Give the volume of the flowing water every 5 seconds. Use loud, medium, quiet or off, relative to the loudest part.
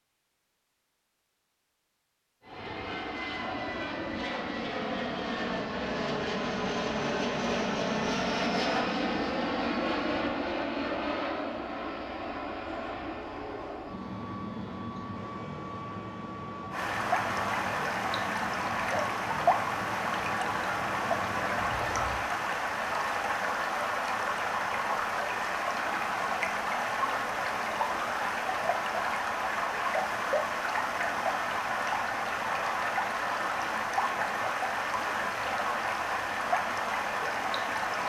off, off, off, loud, loud, loud, loud, loud.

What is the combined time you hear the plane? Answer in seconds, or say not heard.
20 s.